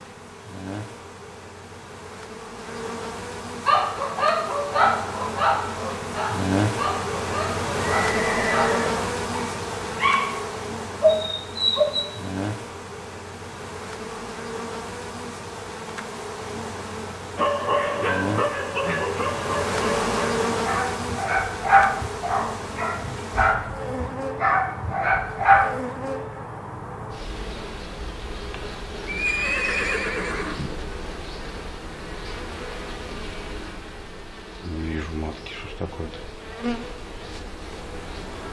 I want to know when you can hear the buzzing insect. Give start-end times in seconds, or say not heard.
0.0-38.4.